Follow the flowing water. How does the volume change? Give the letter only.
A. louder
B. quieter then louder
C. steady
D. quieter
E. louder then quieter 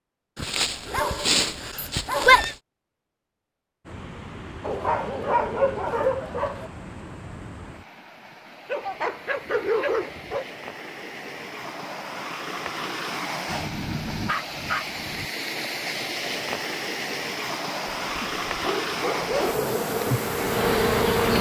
A.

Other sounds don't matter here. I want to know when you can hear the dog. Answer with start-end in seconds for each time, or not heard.
0.3-2.5, 4.6-6.7, 8.7-10.4, 13.4-15.2, 18.0-19.6.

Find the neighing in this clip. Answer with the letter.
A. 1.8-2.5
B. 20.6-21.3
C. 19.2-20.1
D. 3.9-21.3
A.